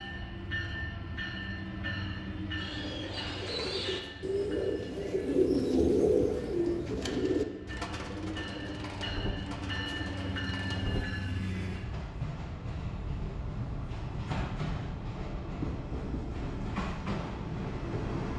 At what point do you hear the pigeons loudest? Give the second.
6 s.